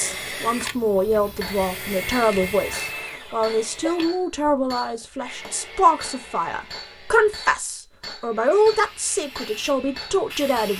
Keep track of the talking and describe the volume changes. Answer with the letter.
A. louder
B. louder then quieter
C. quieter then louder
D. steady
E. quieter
D.